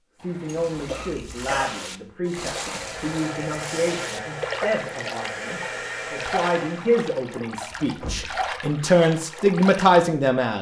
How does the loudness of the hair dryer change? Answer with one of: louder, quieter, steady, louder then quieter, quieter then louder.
steady.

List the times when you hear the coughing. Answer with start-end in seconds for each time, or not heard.
0.8-1.6.